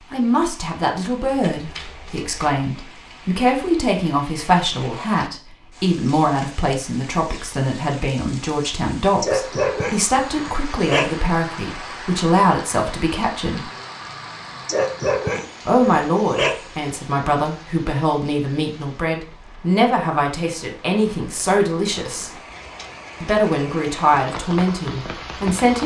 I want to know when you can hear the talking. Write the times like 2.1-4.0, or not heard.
0.1-13.7, 15.7-22.3, 23.2-25.8.